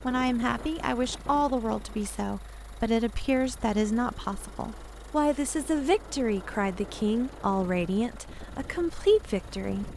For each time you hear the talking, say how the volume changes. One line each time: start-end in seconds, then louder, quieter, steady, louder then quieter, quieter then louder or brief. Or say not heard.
0.0-9.9 steady.